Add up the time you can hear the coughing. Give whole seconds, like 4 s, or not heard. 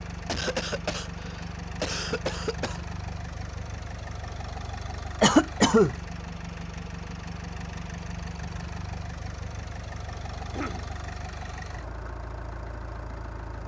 4 s.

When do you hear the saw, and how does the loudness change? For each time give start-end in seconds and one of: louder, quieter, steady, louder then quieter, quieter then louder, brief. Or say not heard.
not heard.